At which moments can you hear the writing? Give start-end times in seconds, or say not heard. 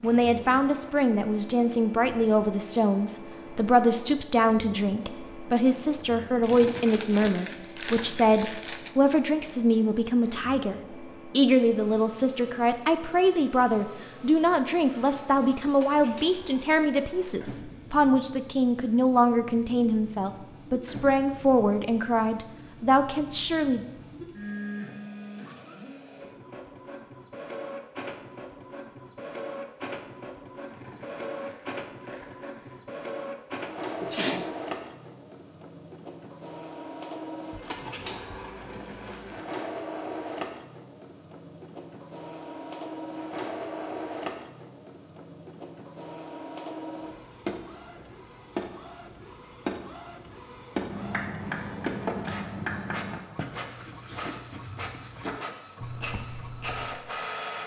50.8-57.0.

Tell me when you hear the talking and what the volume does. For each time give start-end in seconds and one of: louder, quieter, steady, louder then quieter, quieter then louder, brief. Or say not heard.
0.0-23.8 steady.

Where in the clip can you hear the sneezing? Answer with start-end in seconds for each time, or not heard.
34.0-34.5.